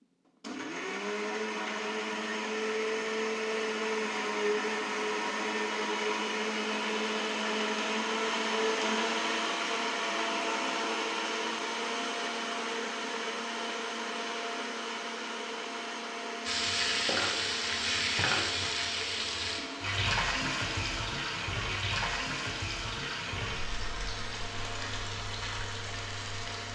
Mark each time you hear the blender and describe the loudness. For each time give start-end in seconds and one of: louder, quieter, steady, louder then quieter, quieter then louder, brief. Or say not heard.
0.4-26.7 quieter.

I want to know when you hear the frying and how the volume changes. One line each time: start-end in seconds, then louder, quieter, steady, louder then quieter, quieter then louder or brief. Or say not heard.
16.4-26.7 quieter.